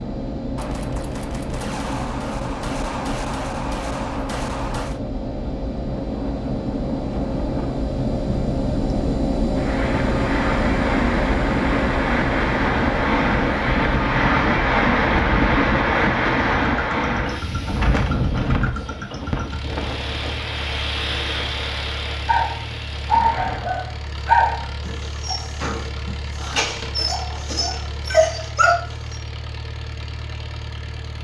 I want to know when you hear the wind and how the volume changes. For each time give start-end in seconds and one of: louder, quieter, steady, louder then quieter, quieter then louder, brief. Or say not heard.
0.0-23.9 louder then quieter.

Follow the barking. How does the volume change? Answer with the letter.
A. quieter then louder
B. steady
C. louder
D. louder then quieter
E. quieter
A.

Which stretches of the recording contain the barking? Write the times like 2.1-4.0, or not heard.
22.2-29.1.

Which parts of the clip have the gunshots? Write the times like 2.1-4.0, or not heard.
0.6-5.0.